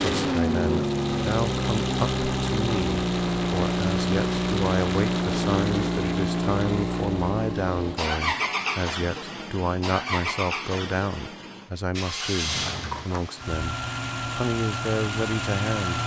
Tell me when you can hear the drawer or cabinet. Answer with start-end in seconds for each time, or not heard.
12.3-13.2.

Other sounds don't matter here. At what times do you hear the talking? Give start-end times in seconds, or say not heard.
0.0-16.0.